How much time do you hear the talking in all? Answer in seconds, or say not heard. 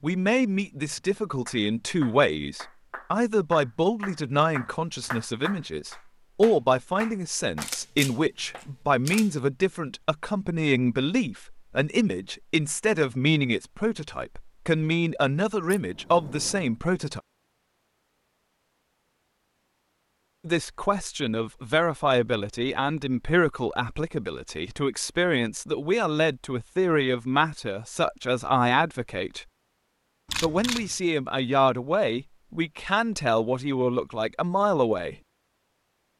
31 s.